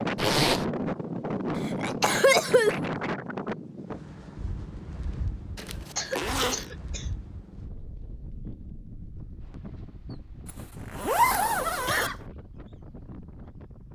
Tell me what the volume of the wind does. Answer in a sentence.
The volume of the wind goes down.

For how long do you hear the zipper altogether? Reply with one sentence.
The zipper can be heard for 3 seconds in total.